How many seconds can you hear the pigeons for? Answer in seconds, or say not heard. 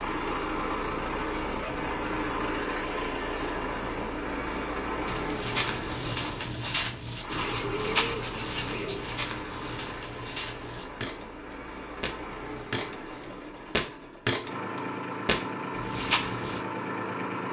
2 s.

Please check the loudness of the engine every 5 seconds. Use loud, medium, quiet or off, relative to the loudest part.
loud, medium, medium, loud.